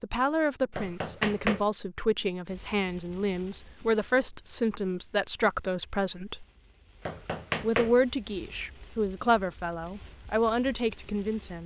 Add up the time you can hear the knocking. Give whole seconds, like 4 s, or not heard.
2 s.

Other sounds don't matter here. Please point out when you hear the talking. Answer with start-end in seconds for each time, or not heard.
0.0-6.5, 7.6-11.6.